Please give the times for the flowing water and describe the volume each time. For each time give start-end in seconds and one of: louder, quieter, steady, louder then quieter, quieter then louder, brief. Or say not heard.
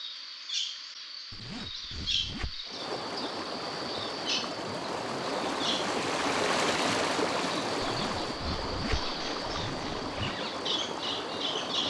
2.6-11.8 louder then quieter.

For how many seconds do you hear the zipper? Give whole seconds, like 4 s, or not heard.
4 s.